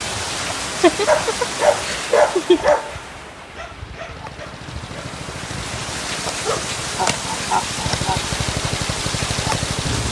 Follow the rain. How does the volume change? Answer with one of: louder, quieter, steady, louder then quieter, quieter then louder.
quieter then louder.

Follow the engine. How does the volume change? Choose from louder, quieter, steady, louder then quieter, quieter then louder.
louder.